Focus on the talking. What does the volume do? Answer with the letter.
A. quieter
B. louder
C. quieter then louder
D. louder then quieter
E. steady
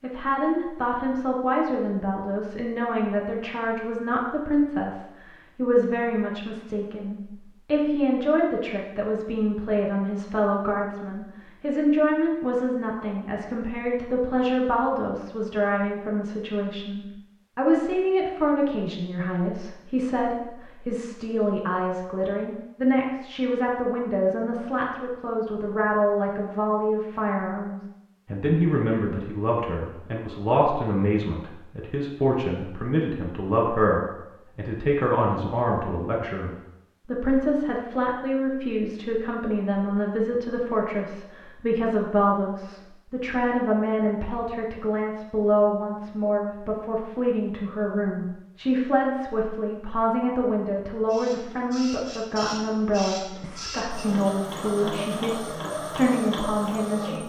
E.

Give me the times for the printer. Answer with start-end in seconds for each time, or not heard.
51.0-57.2.